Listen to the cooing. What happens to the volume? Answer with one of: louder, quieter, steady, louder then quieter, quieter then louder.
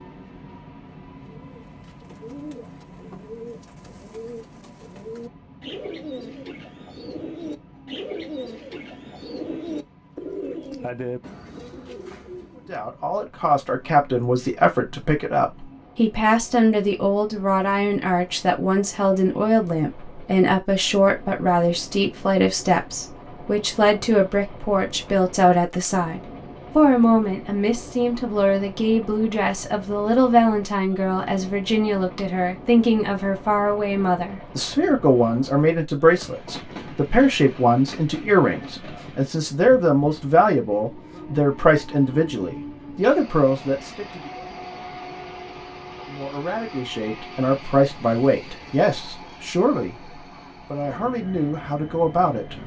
louder.